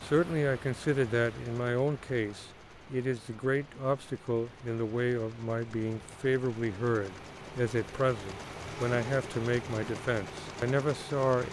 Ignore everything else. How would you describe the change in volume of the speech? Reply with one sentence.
The loudness of the speech stays about the same.